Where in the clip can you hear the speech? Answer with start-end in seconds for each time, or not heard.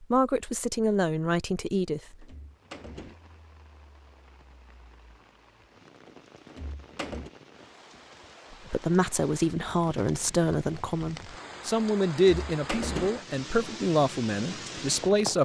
0.0-2.2, 8.7-15.3.